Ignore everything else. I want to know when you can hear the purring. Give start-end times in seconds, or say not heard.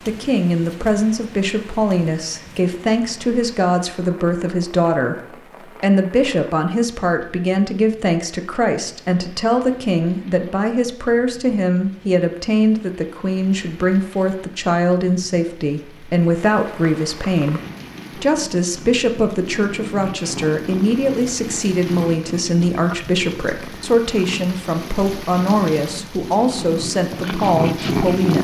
16.4-28.3.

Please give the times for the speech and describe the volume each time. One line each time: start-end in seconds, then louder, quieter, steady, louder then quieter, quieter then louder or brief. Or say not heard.
0.1-28.3 steady.